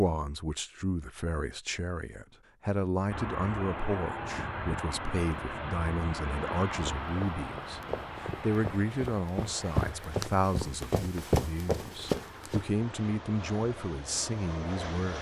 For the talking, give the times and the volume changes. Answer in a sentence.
You can hear the talking from 0.0 to 15.1 s, at a steady volume.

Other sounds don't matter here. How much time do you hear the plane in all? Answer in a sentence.
You can hear the plane for 12 seconds altogether.